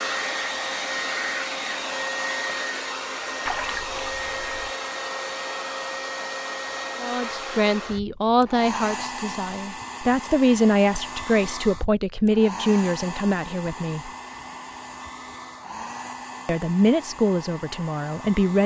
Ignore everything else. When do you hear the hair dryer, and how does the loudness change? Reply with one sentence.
The hair dryer can be heard from 0.0 to 18.6 s, getting quieter.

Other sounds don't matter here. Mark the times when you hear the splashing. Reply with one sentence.
You can hear the splashing from 3.5 to 4.7 s.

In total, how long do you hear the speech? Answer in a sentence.
You can hear the speech for 9 seconds altogether.